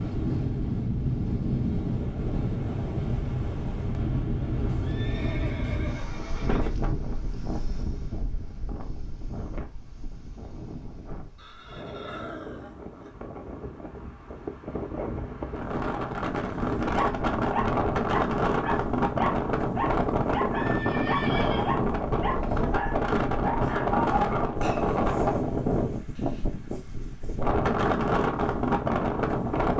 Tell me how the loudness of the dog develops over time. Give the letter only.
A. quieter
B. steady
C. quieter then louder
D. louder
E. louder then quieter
B.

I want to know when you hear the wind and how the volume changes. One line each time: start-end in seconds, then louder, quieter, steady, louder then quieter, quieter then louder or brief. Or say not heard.
0.0-29.7 quieter then louder.